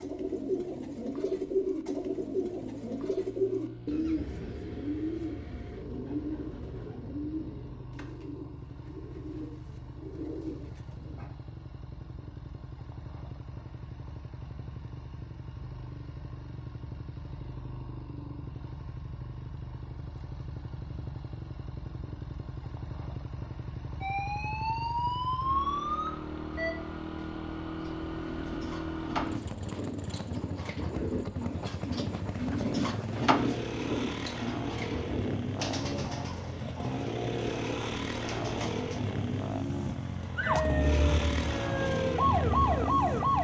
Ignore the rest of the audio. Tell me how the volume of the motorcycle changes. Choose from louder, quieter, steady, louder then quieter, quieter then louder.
louder.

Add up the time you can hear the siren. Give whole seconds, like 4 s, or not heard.
6 s.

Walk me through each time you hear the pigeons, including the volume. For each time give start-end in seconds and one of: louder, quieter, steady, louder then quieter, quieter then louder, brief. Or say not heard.
0.0-11.3 quieter
27.8-39.1 louder then quieter.